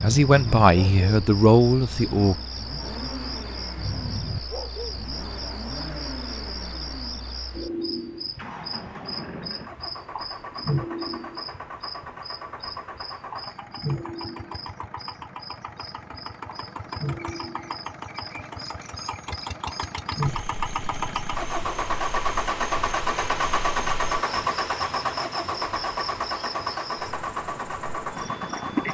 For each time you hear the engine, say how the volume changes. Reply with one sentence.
The engine can be heard from 0.2 to 28.8 s, getting louder.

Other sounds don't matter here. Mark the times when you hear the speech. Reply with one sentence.
You can hear the speech from 0.0 to 2.4 s.